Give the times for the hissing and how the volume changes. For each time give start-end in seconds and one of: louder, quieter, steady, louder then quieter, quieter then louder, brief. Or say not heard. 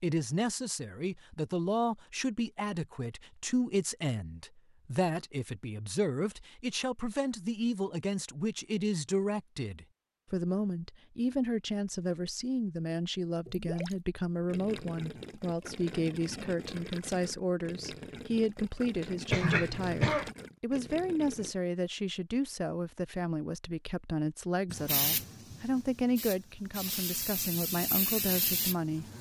24.7-29.1 quieter then louder.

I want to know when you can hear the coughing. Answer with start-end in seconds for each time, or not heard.
19.3-20.3.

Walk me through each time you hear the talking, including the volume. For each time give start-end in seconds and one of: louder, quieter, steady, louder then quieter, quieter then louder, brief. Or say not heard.
0.0-29.1 steady.